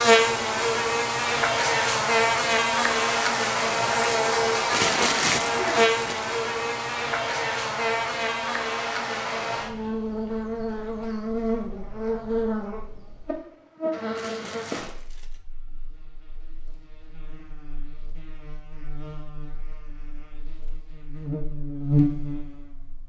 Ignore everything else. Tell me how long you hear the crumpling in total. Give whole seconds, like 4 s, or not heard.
3 s.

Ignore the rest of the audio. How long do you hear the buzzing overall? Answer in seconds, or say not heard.
23 s.